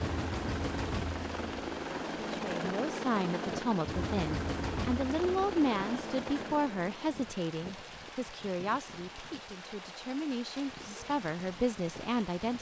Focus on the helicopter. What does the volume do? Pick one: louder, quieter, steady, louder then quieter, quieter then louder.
steady.